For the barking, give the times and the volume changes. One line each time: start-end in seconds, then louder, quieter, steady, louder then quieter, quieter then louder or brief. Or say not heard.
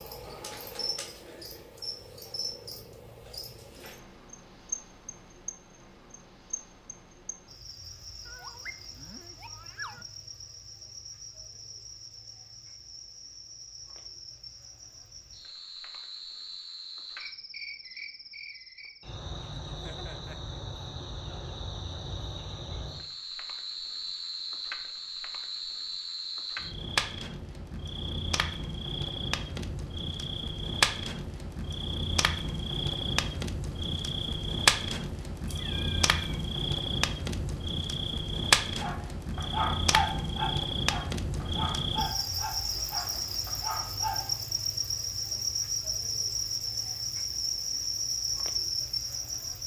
38.8-44.5 quieter.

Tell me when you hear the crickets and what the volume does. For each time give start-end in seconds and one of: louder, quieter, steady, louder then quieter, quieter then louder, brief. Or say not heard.
0.0-49.6 louder.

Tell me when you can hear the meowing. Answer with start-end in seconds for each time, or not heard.
8.2-10.1, 19.6-20.6, 35.5-36.4.